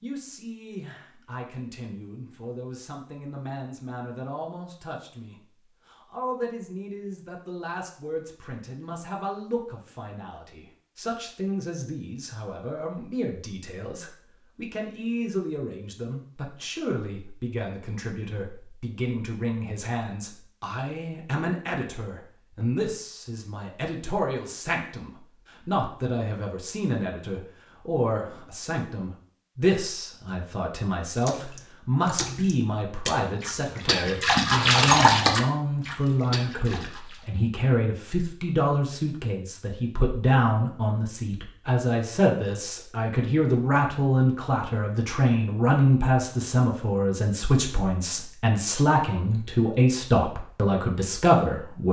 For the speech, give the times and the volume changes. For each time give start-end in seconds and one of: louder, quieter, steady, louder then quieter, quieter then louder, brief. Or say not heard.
0.0-51.8 louder.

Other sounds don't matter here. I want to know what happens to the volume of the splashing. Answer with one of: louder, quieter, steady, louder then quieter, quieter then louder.
louder then quieter.